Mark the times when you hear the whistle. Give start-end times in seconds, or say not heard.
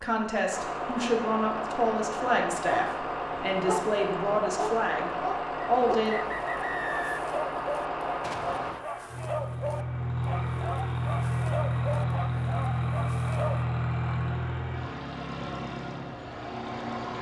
5.6-7.2.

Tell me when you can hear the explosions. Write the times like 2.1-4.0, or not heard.
8.2-8.8.